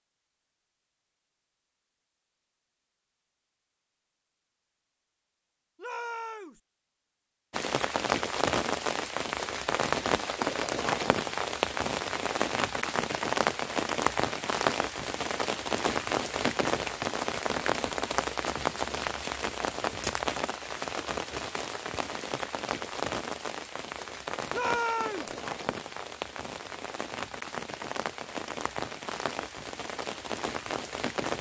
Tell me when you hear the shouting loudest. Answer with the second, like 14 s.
25 s.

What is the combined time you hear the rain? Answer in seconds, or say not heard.
24 s.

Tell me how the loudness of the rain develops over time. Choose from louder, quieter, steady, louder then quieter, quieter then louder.
quieter.